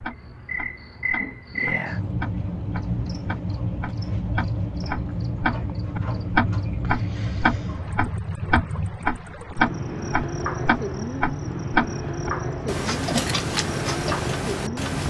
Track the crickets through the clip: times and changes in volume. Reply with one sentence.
You can hear the crickets from 0.0 to 15.0 s, at a steady volume.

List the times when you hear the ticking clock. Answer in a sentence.
The ticking clock can be heard from 0.0 to 15.0 s.